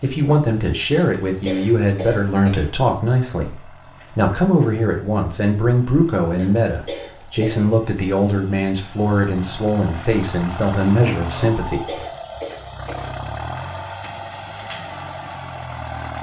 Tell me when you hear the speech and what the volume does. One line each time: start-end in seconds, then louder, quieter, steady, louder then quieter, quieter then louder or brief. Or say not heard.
0.0-11.9 steady.